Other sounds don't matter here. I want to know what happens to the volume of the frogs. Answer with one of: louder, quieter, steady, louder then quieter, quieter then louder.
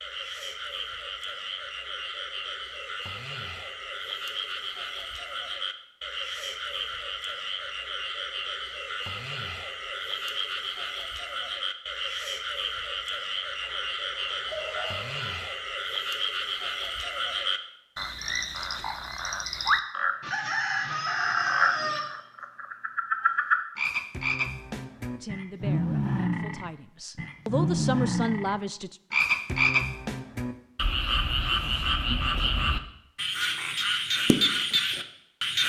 louder.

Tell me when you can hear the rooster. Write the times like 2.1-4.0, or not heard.
13.6-15.2, 20.2-22.0.